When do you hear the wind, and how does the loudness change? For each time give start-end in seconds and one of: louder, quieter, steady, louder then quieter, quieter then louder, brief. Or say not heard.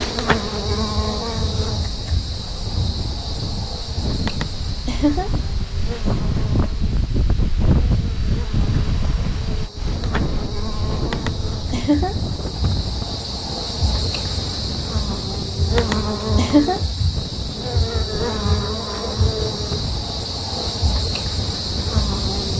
0.0-22.5 louder then quieter.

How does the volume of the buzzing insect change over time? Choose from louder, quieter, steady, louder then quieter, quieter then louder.
quieter then louder.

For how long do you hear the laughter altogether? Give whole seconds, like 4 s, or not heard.
3 s.